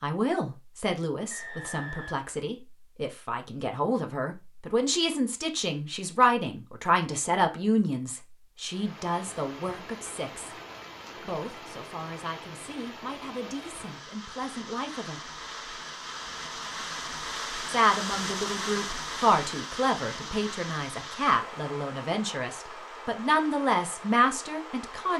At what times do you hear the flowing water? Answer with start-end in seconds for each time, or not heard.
8.6-25.1.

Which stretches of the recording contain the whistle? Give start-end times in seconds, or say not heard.
1.3-2.3.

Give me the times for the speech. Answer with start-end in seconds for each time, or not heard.
0.0-10.6, 11.2-15.2, 17.6-25.1.